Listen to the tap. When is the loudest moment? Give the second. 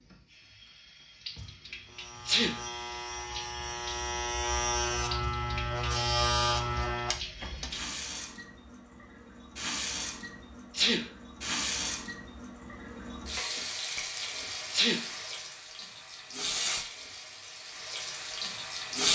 19 s.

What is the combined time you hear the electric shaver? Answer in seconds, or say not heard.
6 s.